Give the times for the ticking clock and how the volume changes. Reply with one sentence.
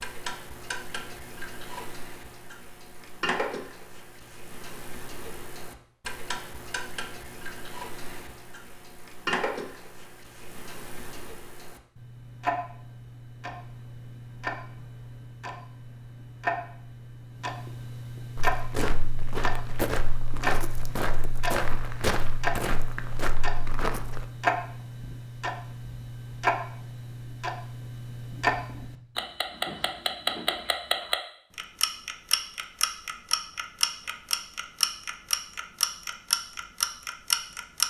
You can hear the ticking clock from 0.0 to 37.8 s, getting louder.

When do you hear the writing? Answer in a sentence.
You can't hear the writing here.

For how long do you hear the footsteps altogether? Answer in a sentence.
The footsteps can be heard for 6 seconds in total.